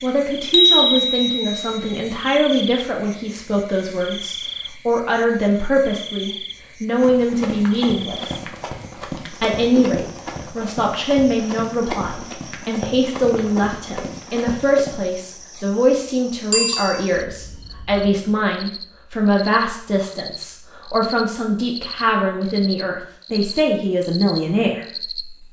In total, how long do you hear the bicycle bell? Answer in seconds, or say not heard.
2 s.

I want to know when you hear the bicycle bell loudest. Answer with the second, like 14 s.
1 s.